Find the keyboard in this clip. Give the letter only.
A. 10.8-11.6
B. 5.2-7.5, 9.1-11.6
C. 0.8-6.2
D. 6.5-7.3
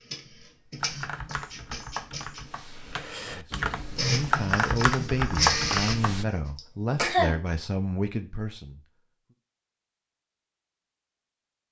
C.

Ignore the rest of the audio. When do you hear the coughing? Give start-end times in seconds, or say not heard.
6.5-7.3.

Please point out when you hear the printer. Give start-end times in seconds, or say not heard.
0.0-2.4, 4.0-6.5.